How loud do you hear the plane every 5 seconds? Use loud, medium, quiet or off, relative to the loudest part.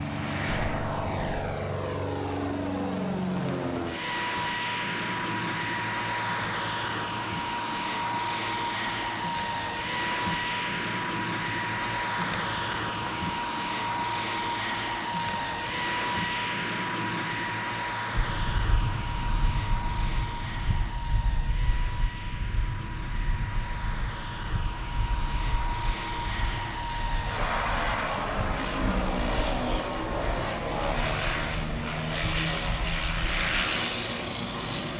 loud, loud, loud, loud, medium, loud, loud.